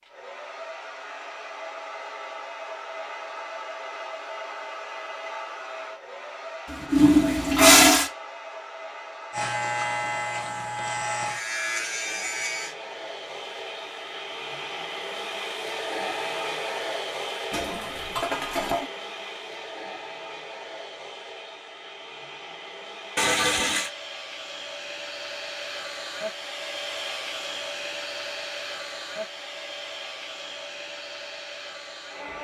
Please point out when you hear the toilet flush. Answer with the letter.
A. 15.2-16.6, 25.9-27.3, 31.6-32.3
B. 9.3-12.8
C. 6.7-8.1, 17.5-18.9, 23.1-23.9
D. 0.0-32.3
C.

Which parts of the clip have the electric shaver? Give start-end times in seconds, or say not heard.
9.3-12.8.